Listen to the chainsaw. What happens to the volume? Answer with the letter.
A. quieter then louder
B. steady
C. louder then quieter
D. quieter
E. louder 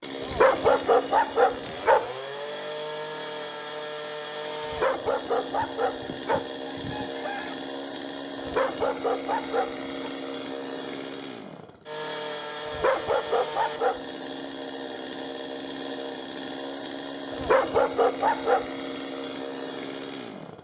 B.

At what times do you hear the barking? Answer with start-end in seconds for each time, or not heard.
0.2-2.0, 4.6-6.4, 8.3-10.1, 12.7-13.9, 17.3-18.6.